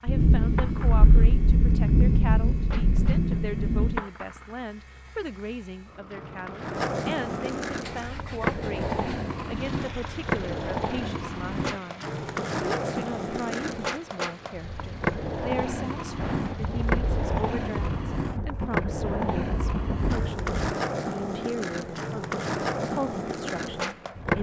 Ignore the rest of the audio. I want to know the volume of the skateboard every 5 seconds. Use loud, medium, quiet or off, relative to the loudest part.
medium, loud, loud, loud, loud.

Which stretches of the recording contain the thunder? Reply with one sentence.
You can hear the thunder from 0.1 to 4.0 s and from 16.1 to 20.8 s.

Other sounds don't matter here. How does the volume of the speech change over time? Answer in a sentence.
The loudness of the speech stays about the same.